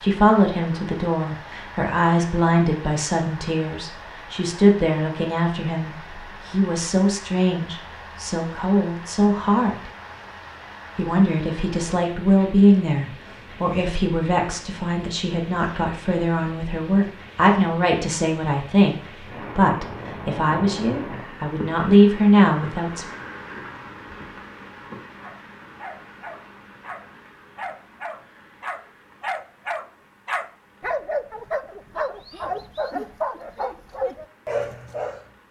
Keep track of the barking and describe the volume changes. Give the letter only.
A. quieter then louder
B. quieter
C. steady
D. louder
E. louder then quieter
D.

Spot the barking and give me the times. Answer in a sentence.
The barking can be heard from 25.2 to 35.2 s.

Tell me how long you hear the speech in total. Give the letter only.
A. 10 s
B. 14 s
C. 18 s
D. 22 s
D.